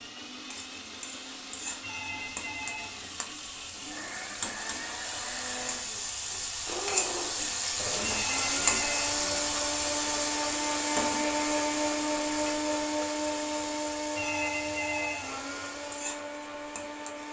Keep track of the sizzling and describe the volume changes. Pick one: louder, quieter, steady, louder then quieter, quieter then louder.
louder then quieter.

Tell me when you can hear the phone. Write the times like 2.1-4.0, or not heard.
1.8-3.0, 8.0-9.1, 14.2-15.4.